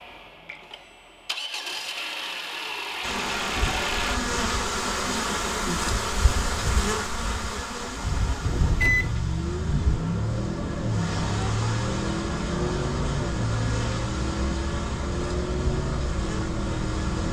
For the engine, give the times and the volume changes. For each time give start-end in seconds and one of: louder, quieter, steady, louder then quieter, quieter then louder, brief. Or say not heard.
0.0-4.2 louder
7.8-17.2 steady.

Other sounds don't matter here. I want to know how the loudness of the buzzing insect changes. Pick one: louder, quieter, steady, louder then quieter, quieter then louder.
quieter.